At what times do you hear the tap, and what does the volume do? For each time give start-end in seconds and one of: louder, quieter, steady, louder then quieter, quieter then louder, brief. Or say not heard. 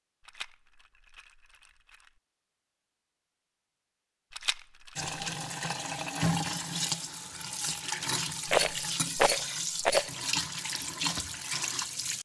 5.0-12.2 steady.